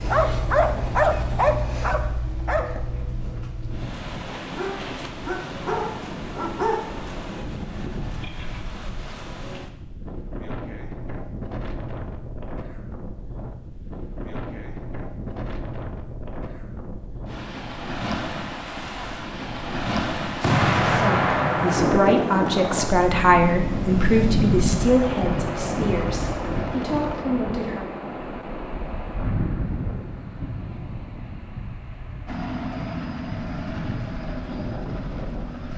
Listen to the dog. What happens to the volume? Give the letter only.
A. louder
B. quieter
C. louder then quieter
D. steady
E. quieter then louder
E.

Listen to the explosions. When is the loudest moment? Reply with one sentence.
The volume of the explosions peaks at 21 seconds.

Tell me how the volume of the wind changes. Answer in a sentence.
The loudness of the wind goes up, then down.